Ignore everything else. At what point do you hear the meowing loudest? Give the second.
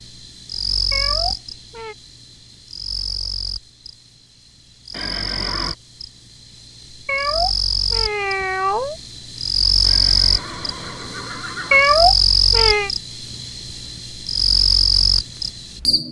12 s.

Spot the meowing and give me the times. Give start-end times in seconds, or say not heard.
0.9-1.9, 7.0-8.9, 11.7-12.9.